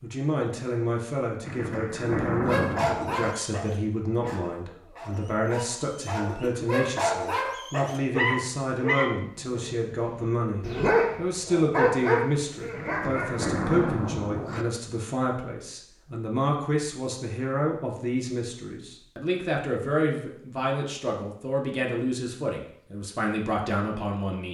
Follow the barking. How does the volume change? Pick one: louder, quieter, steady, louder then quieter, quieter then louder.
louder.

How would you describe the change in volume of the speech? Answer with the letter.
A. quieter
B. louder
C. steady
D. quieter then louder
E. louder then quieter
C.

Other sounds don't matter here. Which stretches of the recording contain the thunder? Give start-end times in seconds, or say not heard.
1.4-3.4, 12.8-14.7.